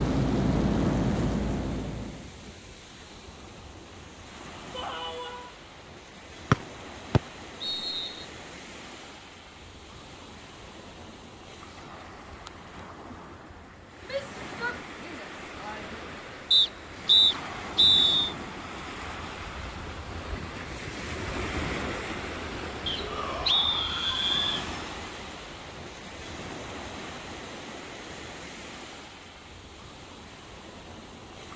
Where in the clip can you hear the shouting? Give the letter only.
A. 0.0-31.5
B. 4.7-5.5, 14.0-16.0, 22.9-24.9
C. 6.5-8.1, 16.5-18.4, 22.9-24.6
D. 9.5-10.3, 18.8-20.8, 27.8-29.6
B.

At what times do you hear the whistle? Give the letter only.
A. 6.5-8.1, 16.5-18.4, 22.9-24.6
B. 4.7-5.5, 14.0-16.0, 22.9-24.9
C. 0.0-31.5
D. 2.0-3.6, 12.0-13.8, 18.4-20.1
A.